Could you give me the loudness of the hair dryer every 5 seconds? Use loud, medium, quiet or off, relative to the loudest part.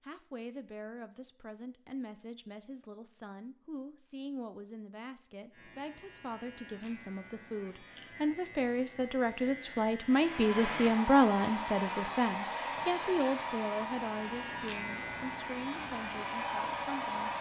off, off, loud, loud.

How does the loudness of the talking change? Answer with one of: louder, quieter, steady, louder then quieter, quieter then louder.
louder then quieter.